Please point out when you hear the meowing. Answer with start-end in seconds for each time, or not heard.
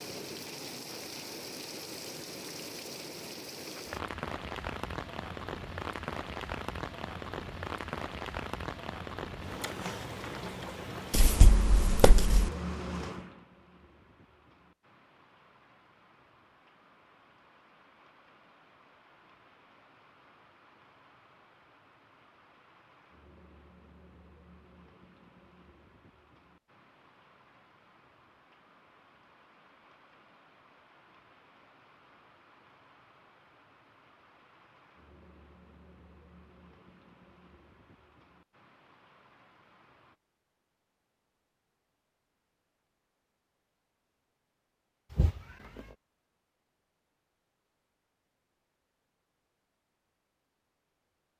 11.1-12.5, 45.1-46.0.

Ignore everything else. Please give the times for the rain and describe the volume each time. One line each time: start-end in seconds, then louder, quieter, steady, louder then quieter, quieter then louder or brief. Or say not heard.
0.0-40.1 quieter.